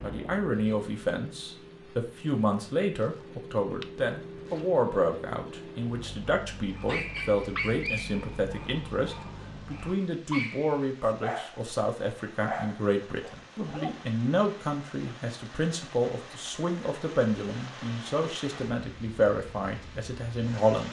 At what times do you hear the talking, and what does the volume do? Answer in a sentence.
You can hear the talking from 0.0 to 20.8 s, at a steady volume.